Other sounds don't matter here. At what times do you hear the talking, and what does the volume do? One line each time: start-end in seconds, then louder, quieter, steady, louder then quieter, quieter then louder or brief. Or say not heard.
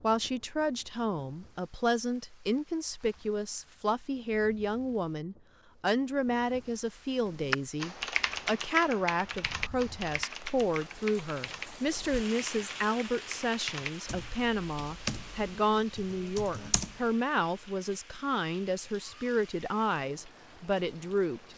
0.0-21.5 steady.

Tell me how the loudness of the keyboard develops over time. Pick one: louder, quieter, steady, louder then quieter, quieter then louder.
quieter.